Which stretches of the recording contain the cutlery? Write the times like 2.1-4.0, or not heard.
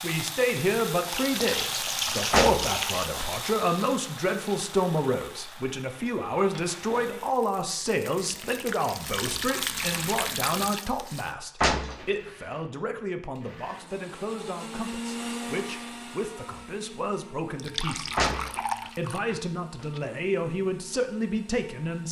not heard.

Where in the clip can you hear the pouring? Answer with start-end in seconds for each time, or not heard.
1.1-3.1, 8.2-10.8, 17.6-19.2.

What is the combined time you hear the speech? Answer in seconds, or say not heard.
21 s.